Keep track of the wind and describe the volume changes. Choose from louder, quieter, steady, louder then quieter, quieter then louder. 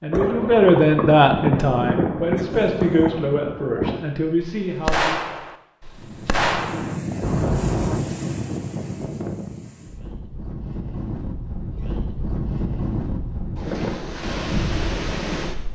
quieter then louder.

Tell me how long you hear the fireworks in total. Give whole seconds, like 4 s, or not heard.
8 s.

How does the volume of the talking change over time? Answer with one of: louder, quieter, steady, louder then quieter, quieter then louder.
quieter.